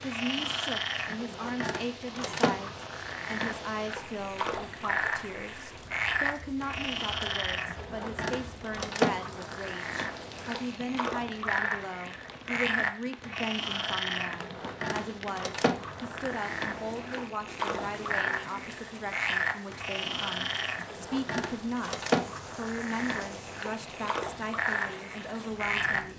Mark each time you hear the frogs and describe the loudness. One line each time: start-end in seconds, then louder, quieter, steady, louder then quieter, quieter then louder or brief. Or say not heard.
0.0-26.0 steady.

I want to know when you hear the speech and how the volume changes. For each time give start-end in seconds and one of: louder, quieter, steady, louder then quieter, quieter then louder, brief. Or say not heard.
0.0-26.1 steady.